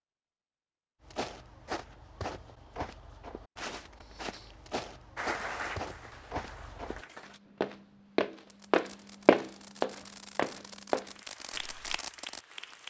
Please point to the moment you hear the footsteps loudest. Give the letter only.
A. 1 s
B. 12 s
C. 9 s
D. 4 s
C.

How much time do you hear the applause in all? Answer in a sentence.
You can hear the applause for 4 seconds altogether.